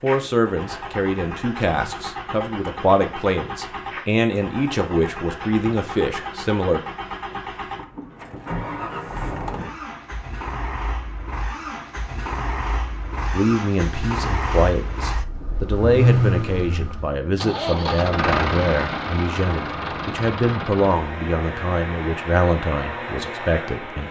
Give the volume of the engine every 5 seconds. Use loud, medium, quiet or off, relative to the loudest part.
medium, medium, medium, loud, medium.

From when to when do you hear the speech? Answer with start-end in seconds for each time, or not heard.
0.0-6.8, 13.3-24.0.